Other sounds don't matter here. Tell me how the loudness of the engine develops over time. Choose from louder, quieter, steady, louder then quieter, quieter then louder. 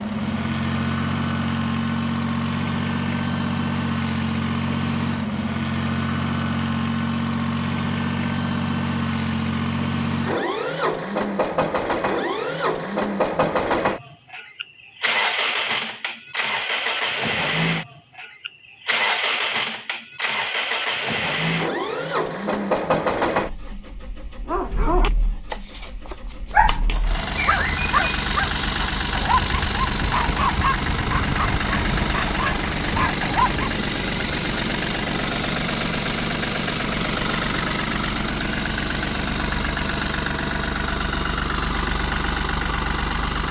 steady.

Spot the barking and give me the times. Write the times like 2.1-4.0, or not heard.
24.4-33.6.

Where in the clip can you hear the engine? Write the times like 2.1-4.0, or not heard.
0.0-43.4.